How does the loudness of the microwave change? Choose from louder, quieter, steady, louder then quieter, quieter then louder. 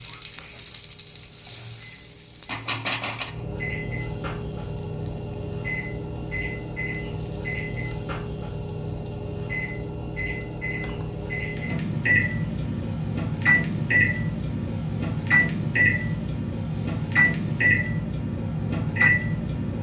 louder.